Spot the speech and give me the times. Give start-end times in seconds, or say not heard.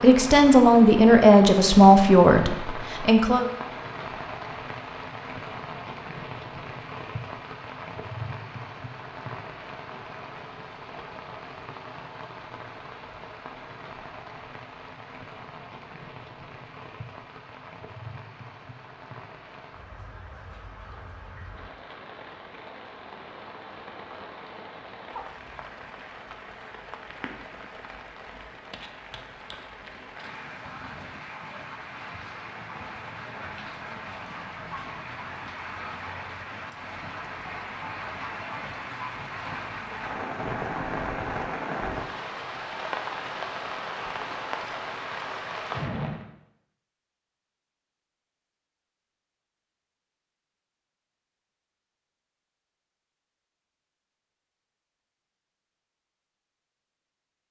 0.0-3.5.